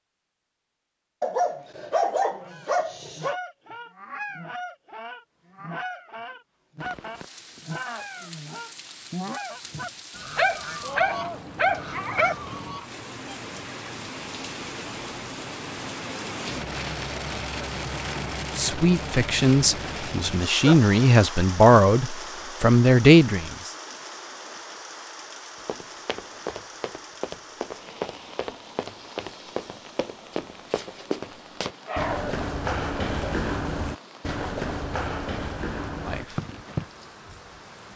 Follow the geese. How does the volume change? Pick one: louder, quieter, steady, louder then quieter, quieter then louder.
steady.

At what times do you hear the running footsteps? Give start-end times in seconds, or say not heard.
25.6-36.9.